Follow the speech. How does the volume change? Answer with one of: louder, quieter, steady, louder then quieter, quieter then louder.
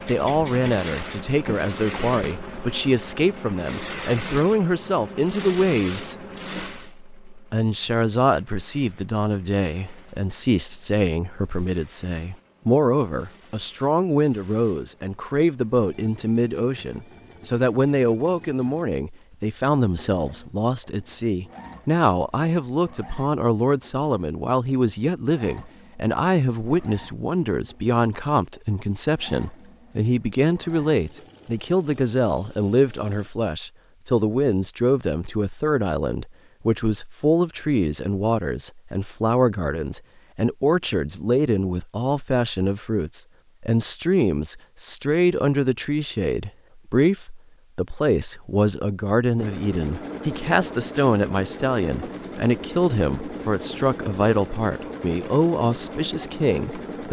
steady.